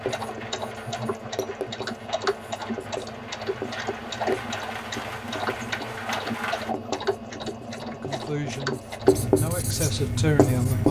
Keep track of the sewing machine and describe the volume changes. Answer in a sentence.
The volume of the sewing machine stays about the same.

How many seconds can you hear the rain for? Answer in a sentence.
You can hear the rain for 7 seconds altogether.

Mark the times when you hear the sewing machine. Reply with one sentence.
The sewing machine can be heard from 0.0 to 9.3 s.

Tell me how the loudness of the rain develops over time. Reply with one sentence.
The volume of the rain goes up.